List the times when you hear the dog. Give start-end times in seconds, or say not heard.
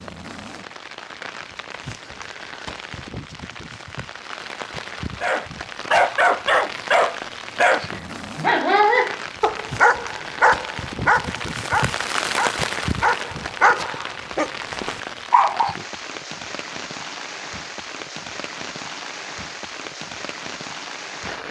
5.2-15.8.